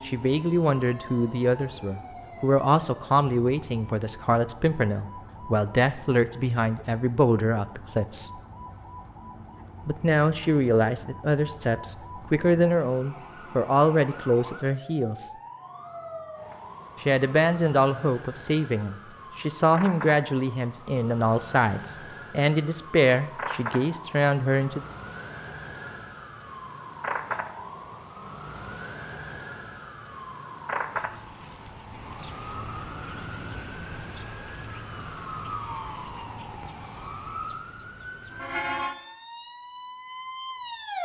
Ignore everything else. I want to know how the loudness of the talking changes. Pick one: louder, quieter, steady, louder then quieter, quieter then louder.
steady.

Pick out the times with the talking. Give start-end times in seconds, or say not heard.
0.0-8.3, 9.8-15.3, 17.0-24.8.